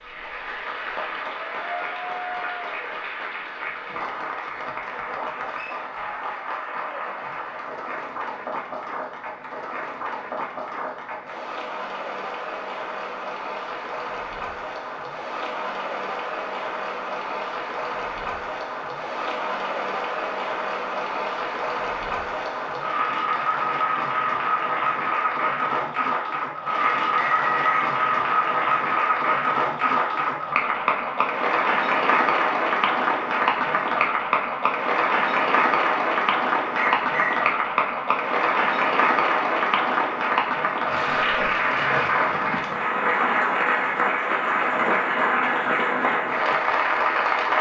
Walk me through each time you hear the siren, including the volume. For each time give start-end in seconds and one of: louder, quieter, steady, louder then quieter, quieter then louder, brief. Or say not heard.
not heard.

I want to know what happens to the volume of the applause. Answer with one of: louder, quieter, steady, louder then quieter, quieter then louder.
louder.